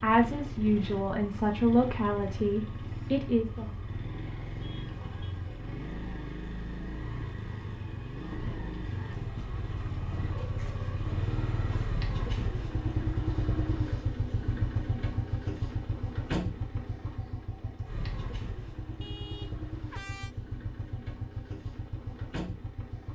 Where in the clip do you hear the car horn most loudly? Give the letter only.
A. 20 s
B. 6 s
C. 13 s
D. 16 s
A.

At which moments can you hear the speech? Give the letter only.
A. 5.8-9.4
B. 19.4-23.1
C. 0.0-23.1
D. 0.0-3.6
D.